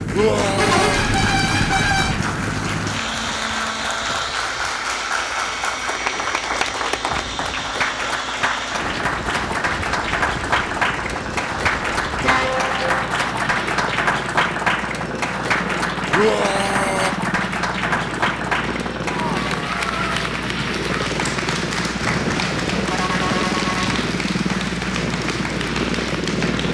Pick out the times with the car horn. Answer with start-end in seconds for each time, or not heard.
0.6-2.2, 12.2-13.0, 22.0-24.1.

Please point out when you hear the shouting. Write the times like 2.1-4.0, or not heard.
0.1-1.1, 16.1-17.1.